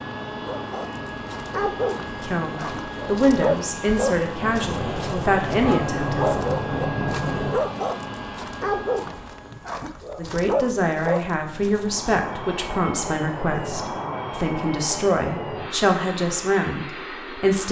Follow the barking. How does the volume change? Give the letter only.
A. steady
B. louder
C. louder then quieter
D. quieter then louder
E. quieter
A.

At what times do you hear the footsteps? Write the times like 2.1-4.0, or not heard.
not heard.